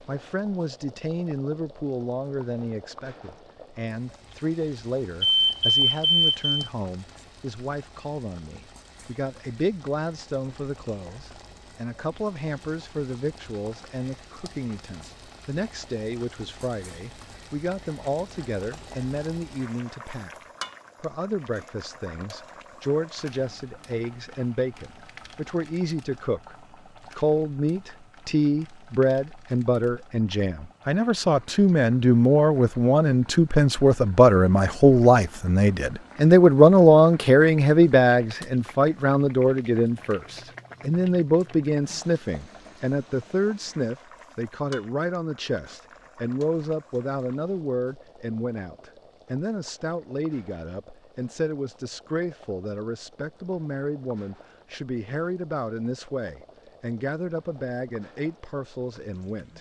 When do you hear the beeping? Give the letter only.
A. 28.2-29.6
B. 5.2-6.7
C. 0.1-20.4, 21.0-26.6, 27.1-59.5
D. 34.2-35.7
B.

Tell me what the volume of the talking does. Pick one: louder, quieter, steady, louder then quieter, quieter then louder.
louder then quieter.